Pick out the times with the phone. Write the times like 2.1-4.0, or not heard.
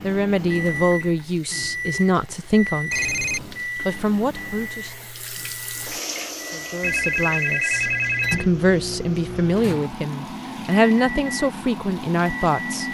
2.9-3.6, 6.8-8.4.